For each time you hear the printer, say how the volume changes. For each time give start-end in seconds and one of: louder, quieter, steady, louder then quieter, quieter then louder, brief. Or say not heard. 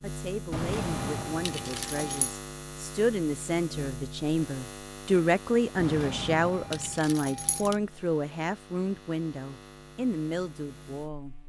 not heard.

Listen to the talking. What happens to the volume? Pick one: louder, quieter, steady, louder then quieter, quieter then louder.
louder then quieter.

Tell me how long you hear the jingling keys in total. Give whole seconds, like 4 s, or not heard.
4 s.